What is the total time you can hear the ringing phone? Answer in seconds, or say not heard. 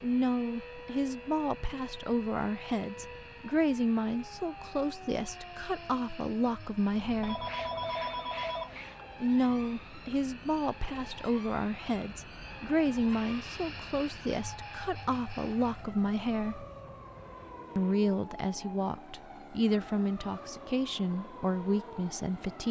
2 s.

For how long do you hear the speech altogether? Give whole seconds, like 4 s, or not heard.
20 s.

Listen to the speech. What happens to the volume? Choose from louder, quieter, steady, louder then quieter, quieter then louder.
steady.